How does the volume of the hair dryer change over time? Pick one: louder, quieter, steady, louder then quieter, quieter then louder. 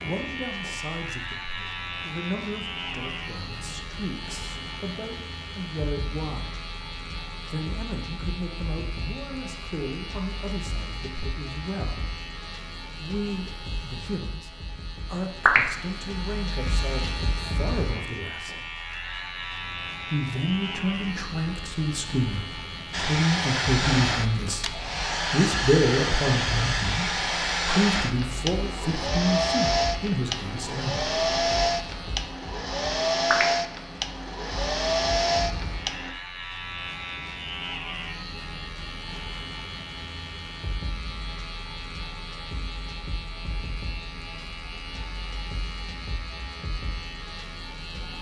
steady.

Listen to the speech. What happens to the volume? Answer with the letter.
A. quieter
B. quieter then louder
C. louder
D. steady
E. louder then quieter
C.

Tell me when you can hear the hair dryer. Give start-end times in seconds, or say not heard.
22.9-36.1.